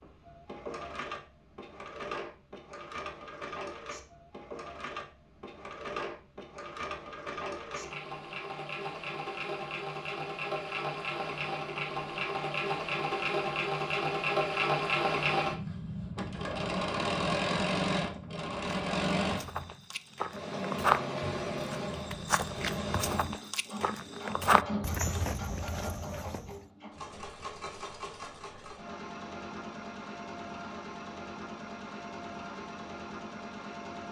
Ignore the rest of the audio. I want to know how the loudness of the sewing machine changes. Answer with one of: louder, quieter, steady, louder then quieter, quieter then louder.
louder then quieter.